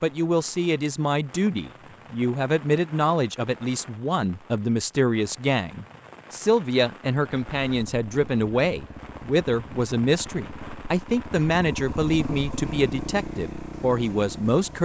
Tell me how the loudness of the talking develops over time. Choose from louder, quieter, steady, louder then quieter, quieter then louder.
steady.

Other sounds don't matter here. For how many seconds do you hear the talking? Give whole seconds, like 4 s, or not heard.
15 s.